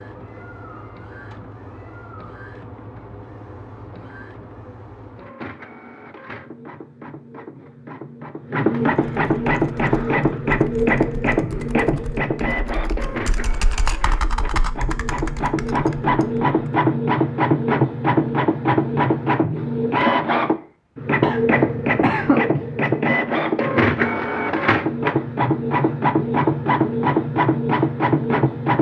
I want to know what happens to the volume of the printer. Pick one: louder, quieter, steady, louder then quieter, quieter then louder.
louder.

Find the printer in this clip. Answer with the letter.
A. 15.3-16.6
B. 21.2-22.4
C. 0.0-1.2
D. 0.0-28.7
D.